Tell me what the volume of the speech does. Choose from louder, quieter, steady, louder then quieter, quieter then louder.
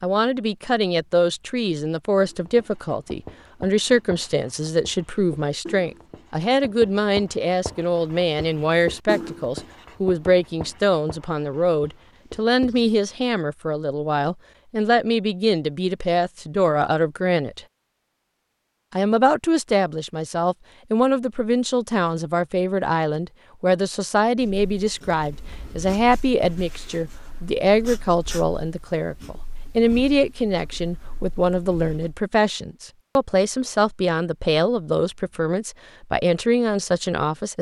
steady.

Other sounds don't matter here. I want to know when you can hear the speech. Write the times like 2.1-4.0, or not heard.
0.0-17.6, 18.9-37.5.